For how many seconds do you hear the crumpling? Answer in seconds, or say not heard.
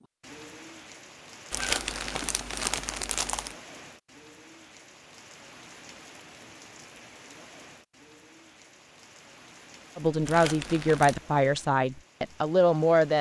3 s.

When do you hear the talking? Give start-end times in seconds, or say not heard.
9.9-13.1.